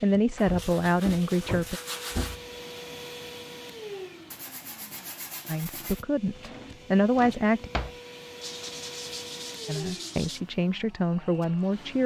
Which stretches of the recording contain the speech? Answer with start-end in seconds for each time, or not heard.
0.0-1.8, 5.5-7.7, 9.7-12.0.